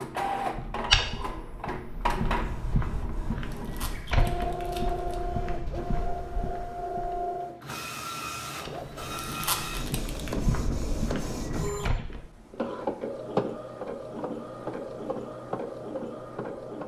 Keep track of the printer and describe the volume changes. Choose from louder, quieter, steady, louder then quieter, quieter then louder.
steady.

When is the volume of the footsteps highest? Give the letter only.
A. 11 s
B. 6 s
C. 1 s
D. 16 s
C.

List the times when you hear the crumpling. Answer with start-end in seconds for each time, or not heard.
3.5-5.2, 9.2-10.3.